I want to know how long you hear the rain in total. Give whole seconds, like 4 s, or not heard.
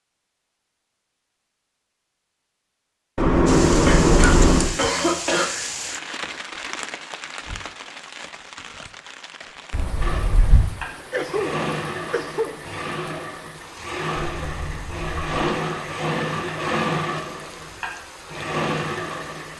16 s.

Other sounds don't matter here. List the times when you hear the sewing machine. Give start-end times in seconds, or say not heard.
10.0-19.5.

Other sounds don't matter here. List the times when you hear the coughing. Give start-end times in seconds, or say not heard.
3.9-5.5, 11.1-12.7.